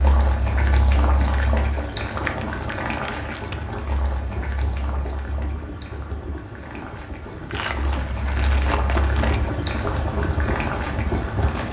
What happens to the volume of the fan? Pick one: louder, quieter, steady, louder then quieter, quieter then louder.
louder.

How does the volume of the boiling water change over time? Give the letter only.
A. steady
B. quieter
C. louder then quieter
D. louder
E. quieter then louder
E.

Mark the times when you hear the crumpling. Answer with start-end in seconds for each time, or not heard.
1.2-3.8, 7.5-9.4.